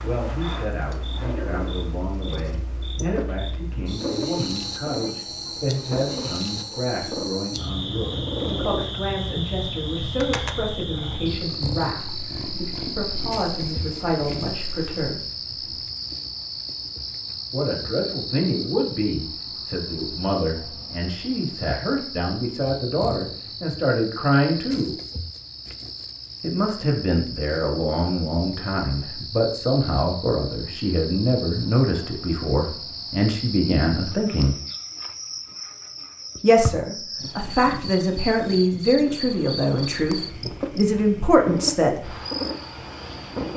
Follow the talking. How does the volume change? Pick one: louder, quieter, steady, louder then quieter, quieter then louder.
louder.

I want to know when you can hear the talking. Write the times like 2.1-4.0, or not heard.
0.0-15.2, 17.5-24.9, 26.4-34.5, 36.4-42.1.